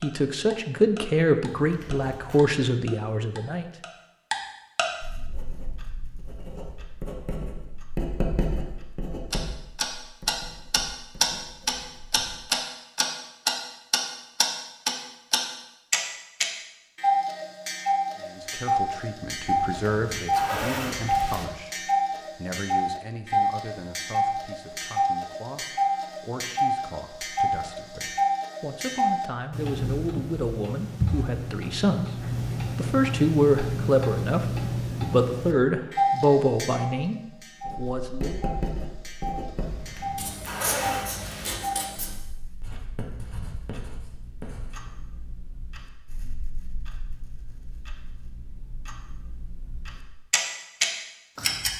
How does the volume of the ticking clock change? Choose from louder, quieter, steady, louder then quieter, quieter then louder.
quieter.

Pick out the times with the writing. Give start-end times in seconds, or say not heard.
5.2-12.4, 37.6-44.9.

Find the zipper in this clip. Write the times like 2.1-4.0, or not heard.
1.6-2.4, 19.4-21.4, 39.5-41.6.